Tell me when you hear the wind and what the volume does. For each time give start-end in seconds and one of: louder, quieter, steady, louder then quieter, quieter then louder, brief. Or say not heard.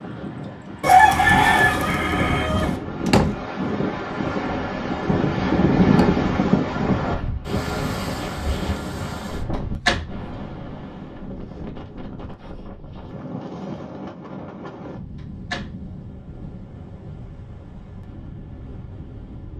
0.0-19.5 louder then quieter.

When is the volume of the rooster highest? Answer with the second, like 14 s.
1 s.